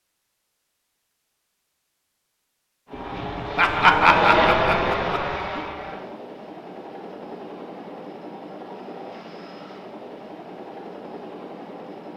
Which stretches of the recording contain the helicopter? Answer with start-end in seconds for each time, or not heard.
2.9-12.1.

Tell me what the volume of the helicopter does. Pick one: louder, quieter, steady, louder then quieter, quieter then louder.
quieter.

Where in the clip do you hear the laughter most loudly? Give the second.
4 s.